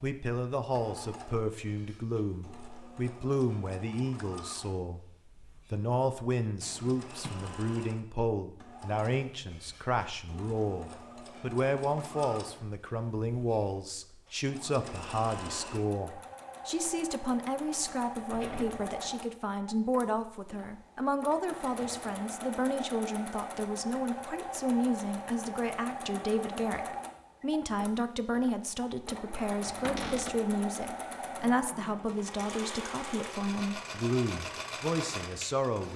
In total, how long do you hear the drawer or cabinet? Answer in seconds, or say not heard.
2 s.